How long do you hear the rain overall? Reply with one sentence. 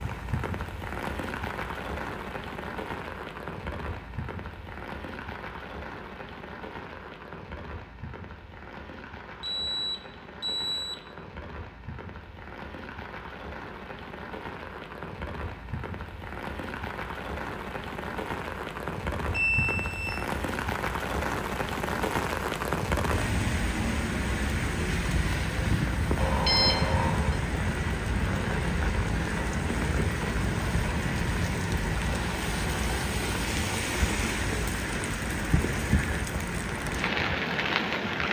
You can hear the rain for 38 seconds altogether.